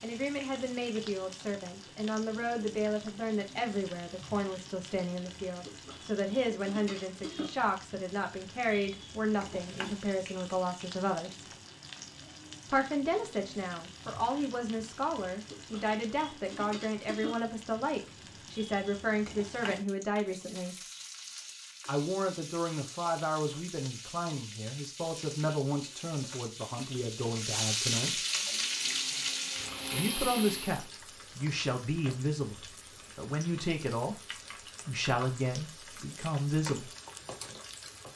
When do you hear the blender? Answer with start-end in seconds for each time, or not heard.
28.2-30.9.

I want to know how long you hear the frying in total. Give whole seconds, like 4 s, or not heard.
38 s.